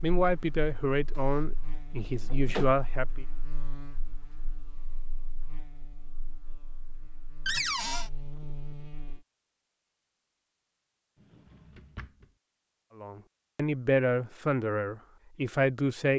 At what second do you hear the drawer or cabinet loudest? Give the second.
8 s.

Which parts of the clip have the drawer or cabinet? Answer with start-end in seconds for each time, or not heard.
1.1-2.7, 7.5-8.1, 11.2-12.3.